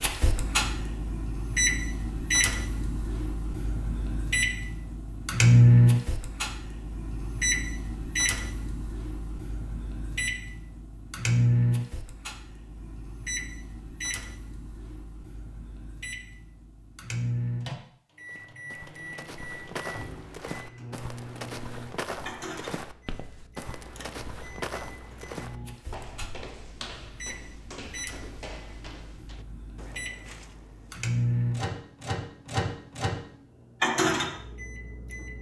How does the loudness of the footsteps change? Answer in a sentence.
The loudness of the footsteps goes down.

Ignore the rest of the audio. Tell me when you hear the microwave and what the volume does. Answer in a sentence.
You can hear the microwave from 0.0 to 35.3 s, getting quieter then louder.